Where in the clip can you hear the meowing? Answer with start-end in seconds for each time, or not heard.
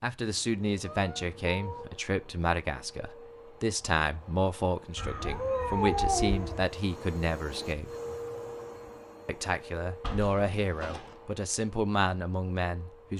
0.8-1.9, 5.0-6.7, 10.0-11.2.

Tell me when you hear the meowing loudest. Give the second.
6 s.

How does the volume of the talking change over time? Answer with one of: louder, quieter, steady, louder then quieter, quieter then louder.
steady.